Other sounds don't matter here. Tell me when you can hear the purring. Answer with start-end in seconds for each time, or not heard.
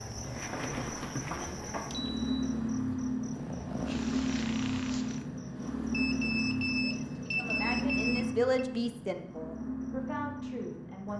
0.0-1.6, 3.2-5.2.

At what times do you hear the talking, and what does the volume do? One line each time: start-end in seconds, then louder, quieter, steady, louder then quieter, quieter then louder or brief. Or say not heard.
6.8-11.1 louder then quieter.